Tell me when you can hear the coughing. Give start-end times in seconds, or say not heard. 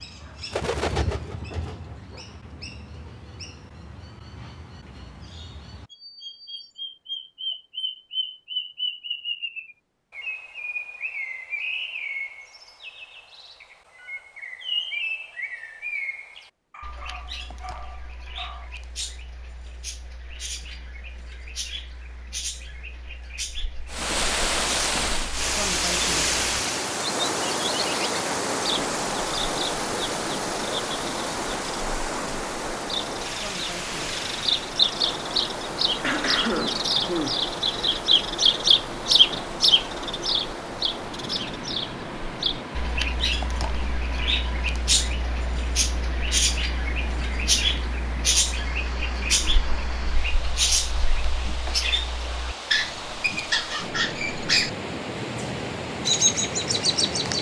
36.0-37.5.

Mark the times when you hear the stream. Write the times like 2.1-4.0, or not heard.
23.9-57.3.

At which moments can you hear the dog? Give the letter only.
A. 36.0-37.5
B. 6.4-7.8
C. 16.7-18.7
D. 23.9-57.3
C.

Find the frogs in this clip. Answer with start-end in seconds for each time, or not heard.
not heard.